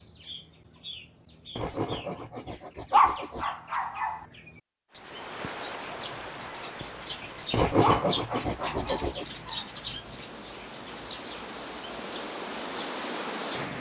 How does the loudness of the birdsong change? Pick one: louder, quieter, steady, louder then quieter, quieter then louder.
louder then quieter.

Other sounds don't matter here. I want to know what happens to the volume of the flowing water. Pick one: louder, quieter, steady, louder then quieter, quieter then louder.
quieter then louder.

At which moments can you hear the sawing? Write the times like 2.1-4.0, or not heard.
1.6-3.5, 7.5-9.2.